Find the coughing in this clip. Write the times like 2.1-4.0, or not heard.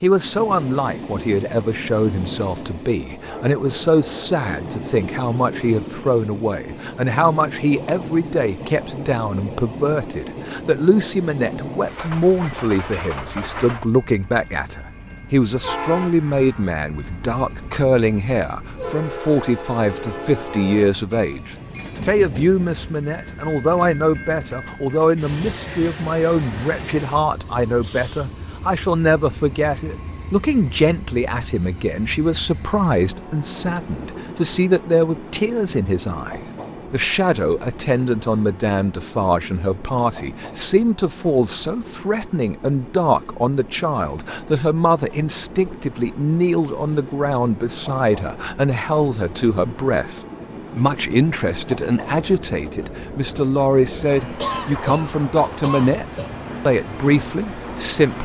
54.4-56.3.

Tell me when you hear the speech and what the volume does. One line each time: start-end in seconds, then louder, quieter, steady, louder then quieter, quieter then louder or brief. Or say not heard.
0.0-56.0 steady
56.6-58.2 brief.